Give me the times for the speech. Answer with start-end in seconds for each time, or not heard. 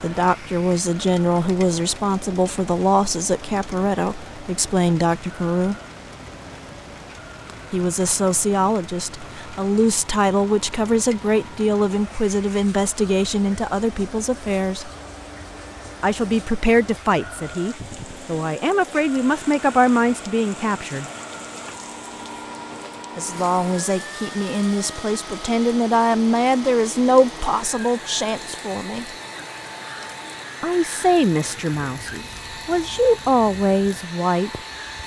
0.0-5.8, 7.7-14.9, 16.0-21.1, 23.1-29.1, 30.6-34.6.